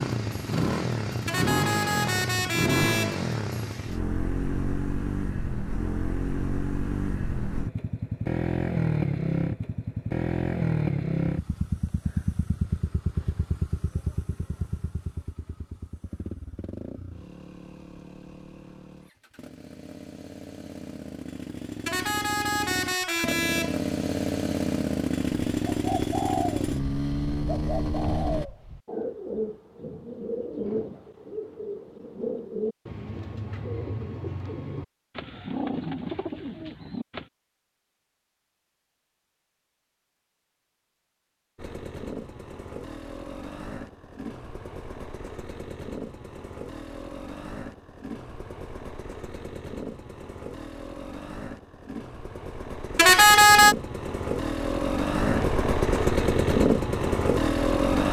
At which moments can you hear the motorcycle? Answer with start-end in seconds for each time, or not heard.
0.0-28.4, 41.5-58.0.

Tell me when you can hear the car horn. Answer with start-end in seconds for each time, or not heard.
1.2-3.2, 21.9-23.8, 53.0-53.8.